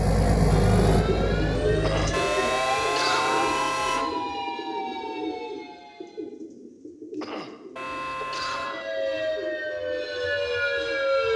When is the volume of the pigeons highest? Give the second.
2 s.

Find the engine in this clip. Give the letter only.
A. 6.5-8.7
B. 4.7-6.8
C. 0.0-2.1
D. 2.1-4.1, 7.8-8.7
C.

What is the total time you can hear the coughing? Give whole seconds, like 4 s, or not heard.
3 s.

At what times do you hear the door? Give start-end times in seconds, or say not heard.
not heard.